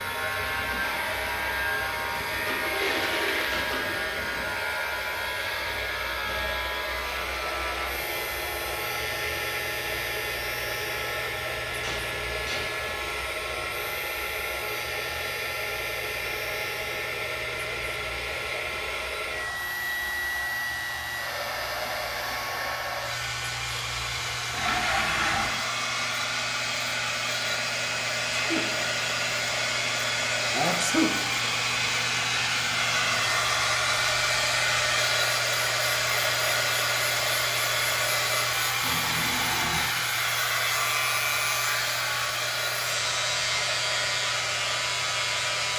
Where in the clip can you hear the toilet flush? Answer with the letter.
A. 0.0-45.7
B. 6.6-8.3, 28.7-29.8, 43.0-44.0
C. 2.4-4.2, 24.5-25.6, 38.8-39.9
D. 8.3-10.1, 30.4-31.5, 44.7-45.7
C.